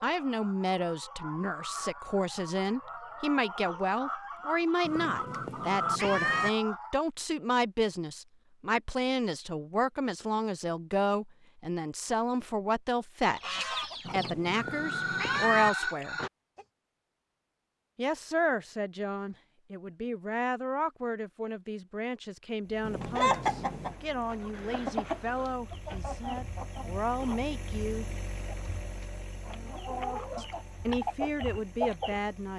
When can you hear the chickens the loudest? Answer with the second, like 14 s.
23 s.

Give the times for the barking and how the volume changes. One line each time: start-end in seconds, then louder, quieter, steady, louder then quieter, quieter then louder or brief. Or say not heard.
not heard.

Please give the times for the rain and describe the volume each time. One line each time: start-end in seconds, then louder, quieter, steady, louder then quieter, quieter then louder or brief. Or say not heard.
not heard.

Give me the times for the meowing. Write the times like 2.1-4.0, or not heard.
4.8-6.5, 14.1-15.7, 22.8-23.9.